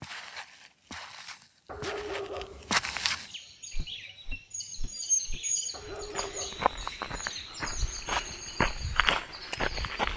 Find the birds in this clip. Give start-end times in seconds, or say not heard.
3.2-10.1.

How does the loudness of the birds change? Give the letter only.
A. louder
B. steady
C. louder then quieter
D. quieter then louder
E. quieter
C.